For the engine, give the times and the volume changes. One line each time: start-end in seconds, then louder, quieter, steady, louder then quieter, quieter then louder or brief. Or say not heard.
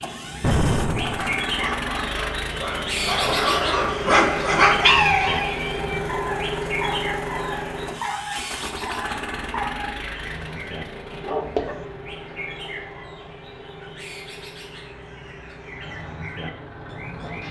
0.0-17.4 quieter.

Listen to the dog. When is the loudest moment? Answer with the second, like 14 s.
5 s.